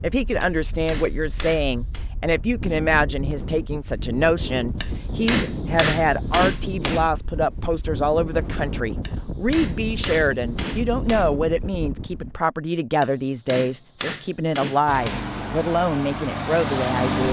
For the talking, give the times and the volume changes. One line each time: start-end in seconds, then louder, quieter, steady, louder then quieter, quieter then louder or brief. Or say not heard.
0.0-17.2 steady.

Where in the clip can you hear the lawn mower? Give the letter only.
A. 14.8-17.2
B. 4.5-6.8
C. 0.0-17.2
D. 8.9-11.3
A.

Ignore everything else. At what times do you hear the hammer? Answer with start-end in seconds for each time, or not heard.
0.4-2.0, 4.8-7.0, 9.1-11.3, 13.0-15.2.